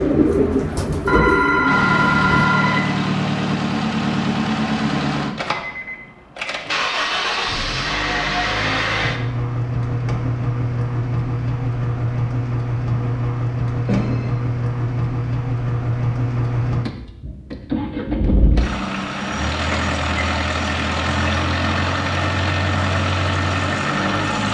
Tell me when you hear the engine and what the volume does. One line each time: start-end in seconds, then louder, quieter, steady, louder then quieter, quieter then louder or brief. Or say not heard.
1.6-24.5 steady.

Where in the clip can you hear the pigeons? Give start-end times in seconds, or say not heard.
0.0-2.5.